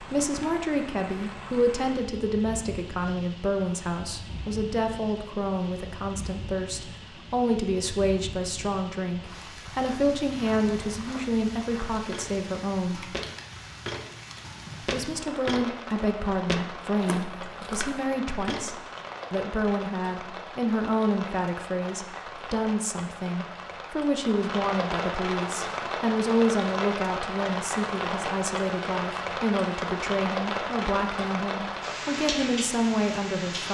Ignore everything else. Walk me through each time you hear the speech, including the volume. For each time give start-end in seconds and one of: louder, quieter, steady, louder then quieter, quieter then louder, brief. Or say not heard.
0.0-13.1 steady
14.8-33.6 steady.